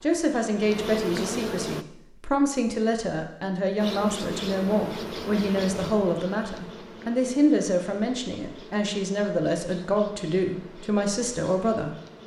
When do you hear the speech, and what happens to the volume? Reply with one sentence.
The speech can be heard from 0.0 to 12.2 s, at a steady volume.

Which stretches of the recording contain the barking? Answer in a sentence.
You can't hear the barking here.